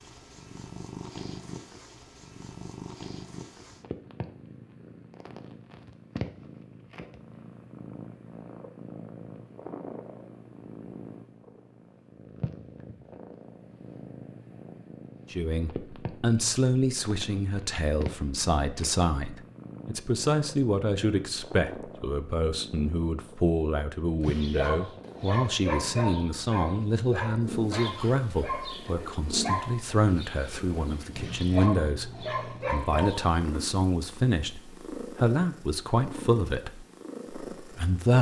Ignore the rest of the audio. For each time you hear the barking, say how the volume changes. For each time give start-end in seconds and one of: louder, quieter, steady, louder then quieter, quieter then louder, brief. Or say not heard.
24.2-33.3 quieter then louder.